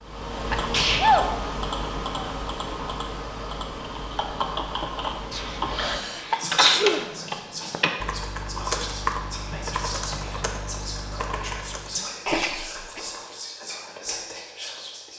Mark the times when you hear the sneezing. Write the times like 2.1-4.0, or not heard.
0.5-1.4, 5.3-7.0, 12.2-13.0.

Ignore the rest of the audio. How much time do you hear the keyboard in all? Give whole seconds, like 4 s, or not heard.
12 s.